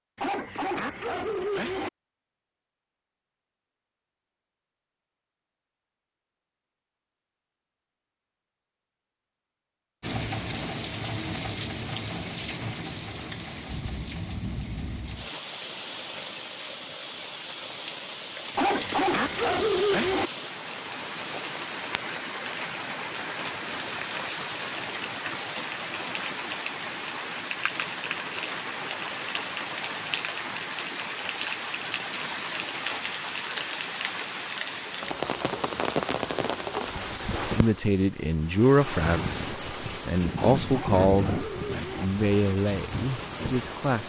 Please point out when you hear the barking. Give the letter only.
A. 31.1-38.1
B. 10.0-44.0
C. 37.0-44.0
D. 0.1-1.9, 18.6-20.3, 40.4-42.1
D.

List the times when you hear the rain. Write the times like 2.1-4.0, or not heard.
10.0-44.0.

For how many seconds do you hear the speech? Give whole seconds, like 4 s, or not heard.
7 s.